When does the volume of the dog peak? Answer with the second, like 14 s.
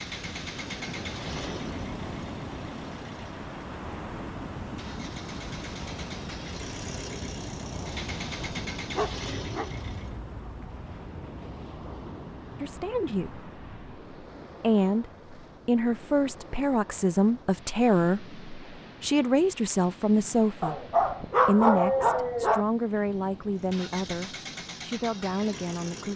22 s.